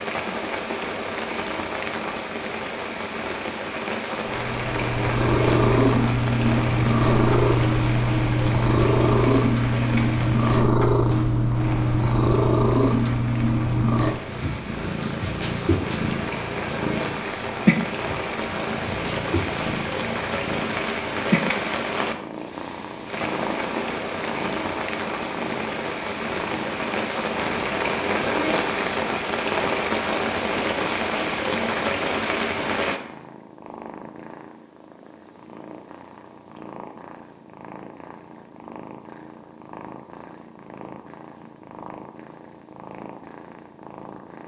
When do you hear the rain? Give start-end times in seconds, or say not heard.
0.0-33.0.